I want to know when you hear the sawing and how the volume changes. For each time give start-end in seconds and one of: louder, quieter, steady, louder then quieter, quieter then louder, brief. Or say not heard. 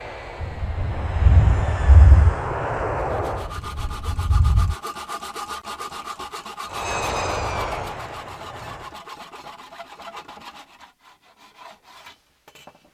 3.0-12.8 quieter.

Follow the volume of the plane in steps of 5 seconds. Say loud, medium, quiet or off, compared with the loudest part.
loud, loud, off.